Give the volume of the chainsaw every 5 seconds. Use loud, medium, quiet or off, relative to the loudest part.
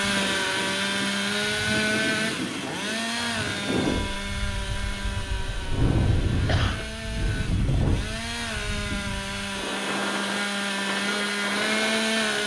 loud, medium, loud.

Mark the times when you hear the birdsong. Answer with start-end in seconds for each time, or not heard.
not heard.